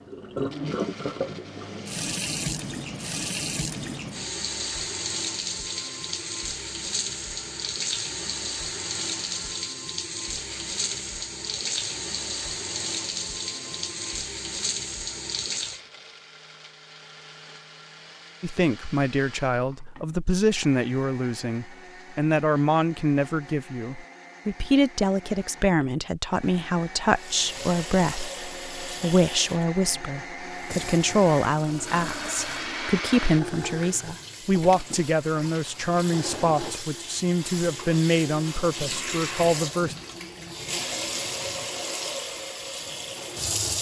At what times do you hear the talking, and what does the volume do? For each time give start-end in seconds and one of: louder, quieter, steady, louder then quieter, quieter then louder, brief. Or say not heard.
18.4-40.0 steady.